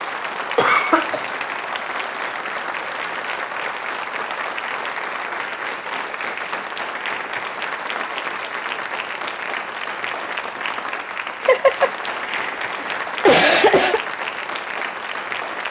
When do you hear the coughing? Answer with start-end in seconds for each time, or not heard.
0.4-1.2, 11.4-14.0.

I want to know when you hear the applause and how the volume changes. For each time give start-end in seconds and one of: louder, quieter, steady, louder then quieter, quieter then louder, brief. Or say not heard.
0.0-15.6 steady.